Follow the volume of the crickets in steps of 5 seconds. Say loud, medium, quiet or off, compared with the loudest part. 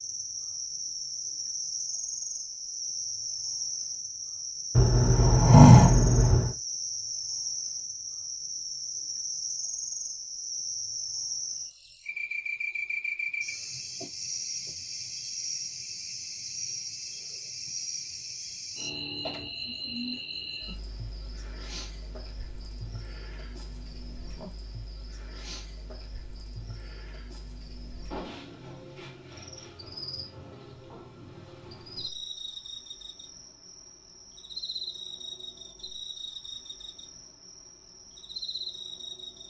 loud, loud, loud, loud, medium, medium, medium, medium.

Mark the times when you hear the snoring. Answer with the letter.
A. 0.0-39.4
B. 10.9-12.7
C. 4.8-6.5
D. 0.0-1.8
C.